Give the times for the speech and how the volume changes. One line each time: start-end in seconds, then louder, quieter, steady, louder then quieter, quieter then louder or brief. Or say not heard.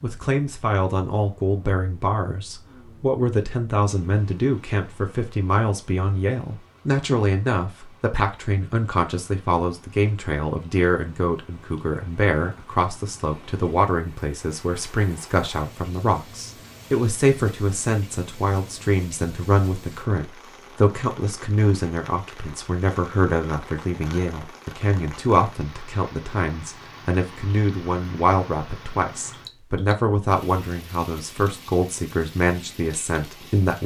0.0-33.8 steady.